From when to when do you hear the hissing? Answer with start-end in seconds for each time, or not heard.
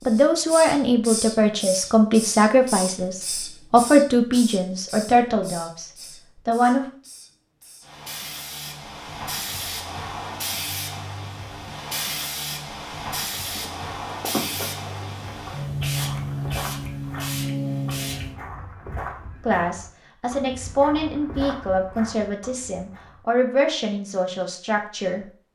0.0-18.4.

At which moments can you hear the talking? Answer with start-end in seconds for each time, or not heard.
0.1-6.8, 19.4-25.2.